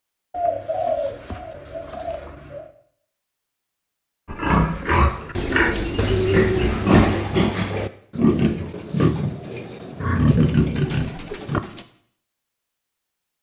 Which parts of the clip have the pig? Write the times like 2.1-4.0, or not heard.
4.2-11.8.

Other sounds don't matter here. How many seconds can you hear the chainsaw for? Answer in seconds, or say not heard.
not heard.